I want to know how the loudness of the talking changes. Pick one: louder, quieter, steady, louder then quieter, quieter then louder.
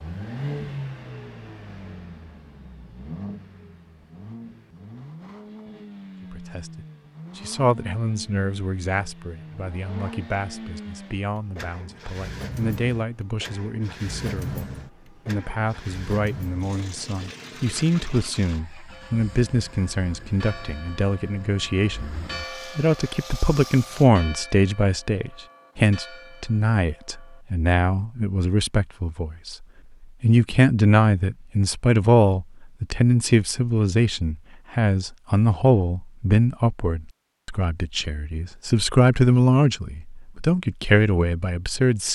louder.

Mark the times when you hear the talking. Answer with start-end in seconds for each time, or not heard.
6.3-22.1, 22.8-42.0.